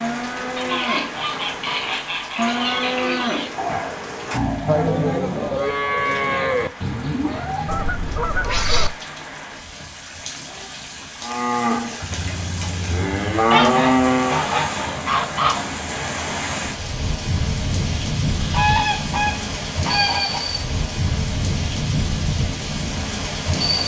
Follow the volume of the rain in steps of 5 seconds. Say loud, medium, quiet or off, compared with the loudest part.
medium, quiet, medium, loud, loud.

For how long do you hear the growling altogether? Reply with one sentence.
You can hear the growling for 2 seconds altogether.